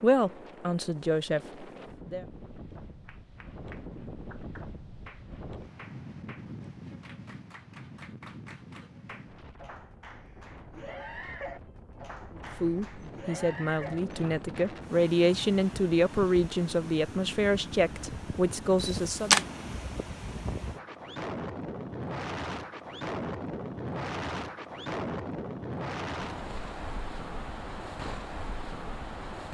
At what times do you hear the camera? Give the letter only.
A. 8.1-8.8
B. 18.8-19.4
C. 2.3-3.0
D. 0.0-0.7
B.